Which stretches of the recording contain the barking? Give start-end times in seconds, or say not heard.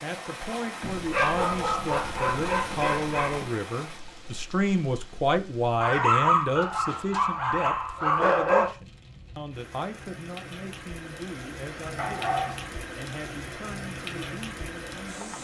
0.8-3.5, 5.8-8.7, 11.9-12.7.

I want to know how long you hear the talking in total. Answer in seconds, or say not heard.
15 s.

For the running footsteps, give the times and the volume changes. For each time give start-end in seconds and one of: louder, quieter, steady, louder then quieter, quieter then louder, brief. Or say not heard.
not heard.